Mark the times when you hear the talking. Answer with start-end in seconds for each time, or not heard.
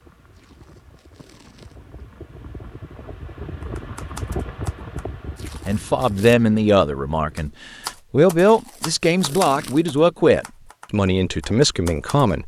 5.7-7.5, 8.1-12.4.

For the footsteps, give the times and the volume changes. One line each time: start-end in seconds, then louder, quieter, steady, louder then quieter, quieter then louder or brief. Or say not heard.
not heard.